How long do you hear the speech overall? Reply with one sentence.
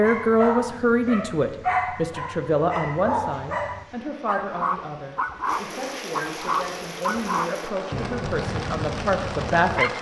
You can hear the speech for 10 seconds altogether.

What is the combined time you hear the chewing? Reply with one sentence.
The chewing can't be heard in this clip.